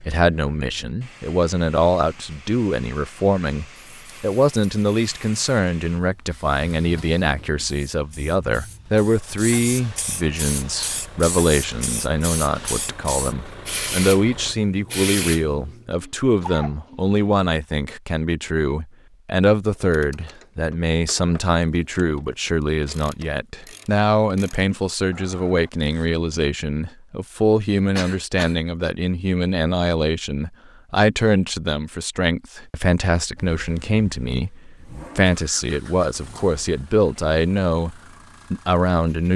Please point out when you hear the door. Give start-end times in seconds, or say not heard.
not heard.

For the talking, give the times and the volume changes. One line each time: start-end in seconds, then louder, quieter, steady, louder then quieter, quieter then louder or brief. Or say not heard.
0.0-39.3 steady.